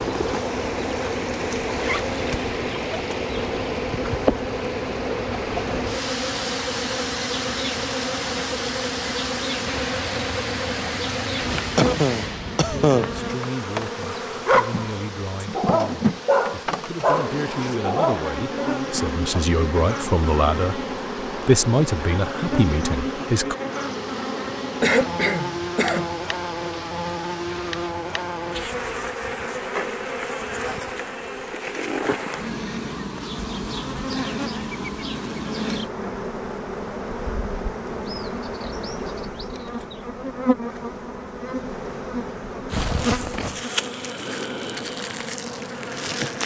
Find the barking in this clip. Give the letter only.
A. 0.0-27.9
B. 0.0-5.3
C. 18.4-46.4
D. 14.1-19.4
D.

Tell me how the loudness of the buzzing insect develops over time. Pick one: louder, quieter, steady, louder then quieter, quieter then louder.
steady.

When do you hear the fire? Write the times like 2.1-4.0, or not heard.
not heard.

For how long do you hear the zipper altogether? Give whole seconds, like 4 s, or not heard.
2 s.